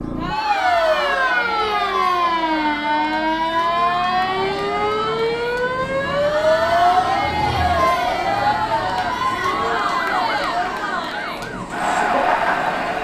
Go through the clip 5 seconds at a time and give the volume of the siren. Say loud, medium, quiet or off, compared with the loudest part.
loud, loud, medium.